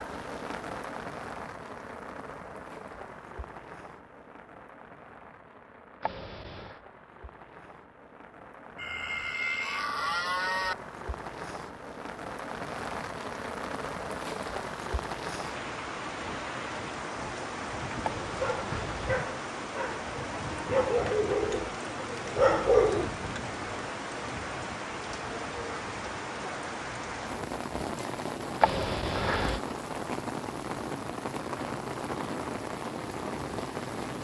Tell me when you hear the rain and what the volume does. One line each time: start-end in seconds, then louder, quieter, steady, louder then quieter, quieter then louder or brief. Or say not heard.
0.0-34.1 louder.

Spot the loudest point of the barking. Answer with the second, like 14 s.
23 s.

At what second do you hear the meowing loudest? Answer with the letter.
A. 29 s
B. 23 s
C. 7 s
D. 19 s
A.